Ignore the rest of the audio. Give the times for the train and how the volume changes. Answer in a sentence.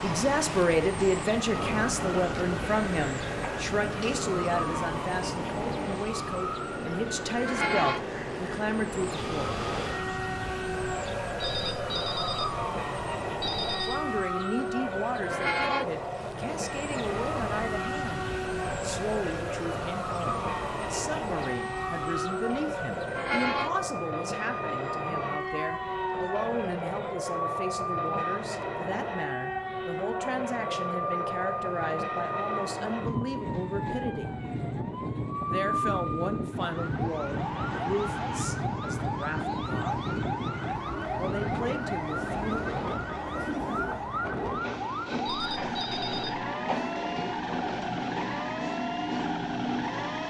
The train can be heard from 0.0 to 50.2 s, at a steady volume.